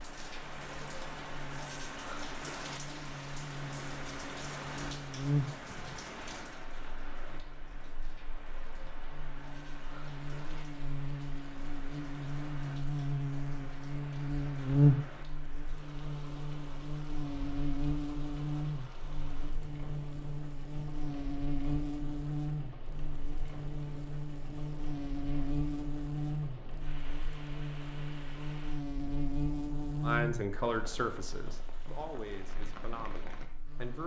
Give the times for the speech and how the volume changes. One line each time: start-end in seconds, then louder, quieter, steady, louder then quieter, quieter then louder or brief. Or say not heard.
30.0-34.0 quieter.